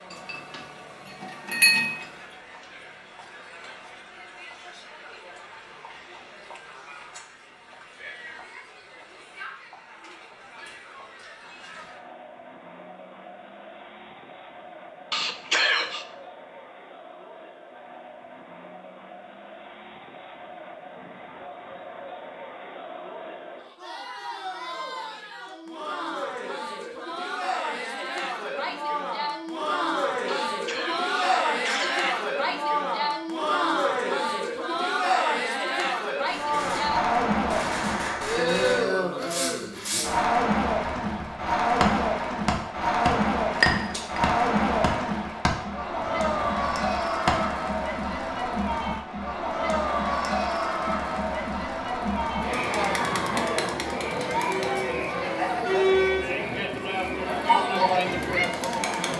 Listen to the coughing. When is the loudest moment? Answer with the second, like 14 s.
16 s.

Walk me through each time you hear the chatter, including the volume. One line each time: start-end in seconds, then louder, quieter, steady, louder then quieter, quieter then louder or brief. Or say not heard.
0.0-59.1 louder.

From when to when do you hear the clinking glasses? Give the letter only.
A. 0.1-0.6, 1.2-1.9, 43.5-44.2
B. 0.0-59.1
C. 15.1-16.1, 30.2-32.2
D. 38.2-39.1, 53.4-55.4
A.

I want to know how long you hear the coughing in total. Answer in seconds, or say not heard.
3 s.